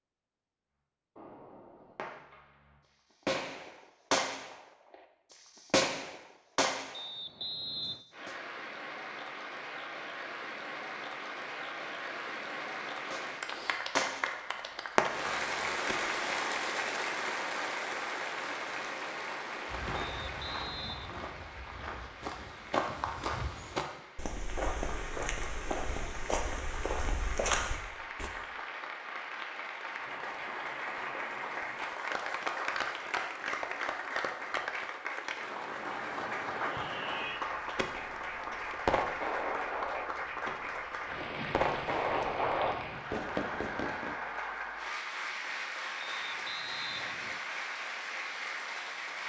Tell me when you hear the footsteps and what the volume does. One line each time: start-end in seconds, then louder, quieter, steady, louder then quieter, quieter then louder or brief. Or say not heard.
19.7-28.3 louder.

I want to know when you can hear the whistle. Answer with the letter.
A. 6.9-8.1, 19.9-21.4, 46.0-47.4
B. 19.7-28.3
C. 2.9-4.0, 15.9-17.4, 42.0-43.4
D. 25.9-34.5
A.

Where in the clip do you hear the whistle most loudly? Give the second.
8 s.